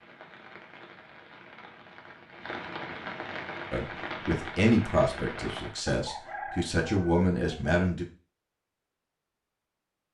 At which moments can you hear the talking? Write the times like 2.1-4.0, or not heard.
3.7-8.1.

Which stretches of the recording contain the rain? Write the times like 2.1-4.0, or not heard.
0.0-5.8.